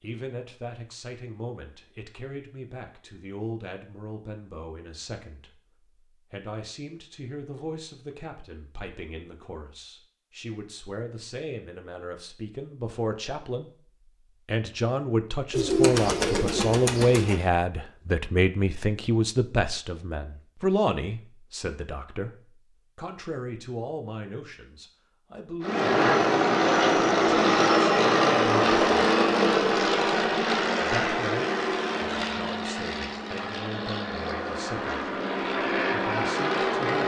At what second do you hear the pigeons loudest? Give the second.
16 s.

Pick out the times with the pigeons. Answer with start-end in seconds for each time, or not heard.
15.5-17.5.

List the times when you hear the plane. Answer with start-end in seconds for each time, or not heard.
25.6-37.0.